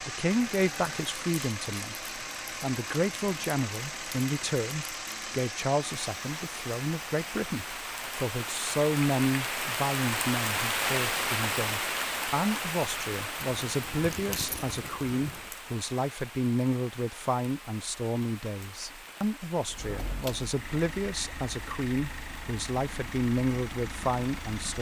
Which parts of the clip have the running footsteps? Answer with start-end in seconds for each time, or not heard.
not heard.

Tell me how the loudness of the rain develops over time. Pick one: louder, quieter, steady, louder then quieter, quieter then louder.
louder then quieter.